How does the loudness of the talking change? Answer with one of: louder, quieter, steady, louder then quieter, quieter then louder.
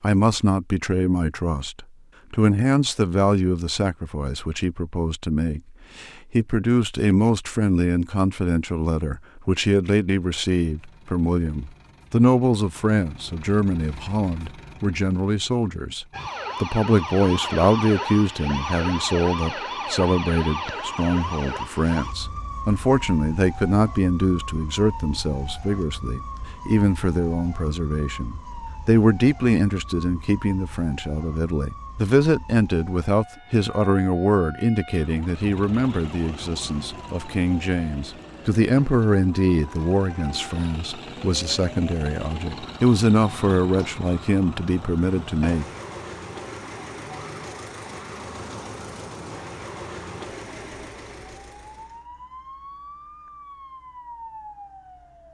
steady.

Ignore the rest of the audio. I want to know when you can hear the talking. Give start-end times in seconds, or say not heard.
0.0-45.6.